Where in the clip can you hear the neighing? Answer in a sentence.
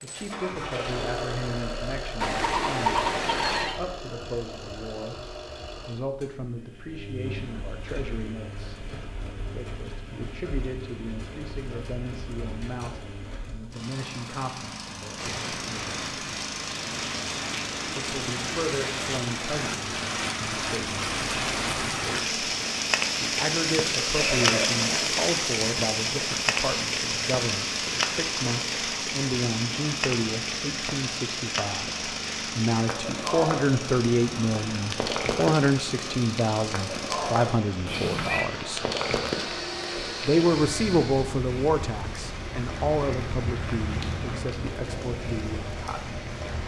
The neighing can be heard from 2.2 to 3.8 s, from 24.1 to 25.1 s and from 37.9 to 38.5 s.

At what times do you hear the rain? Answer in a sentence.
You can hear the rain from 15.2 to 46.6 s.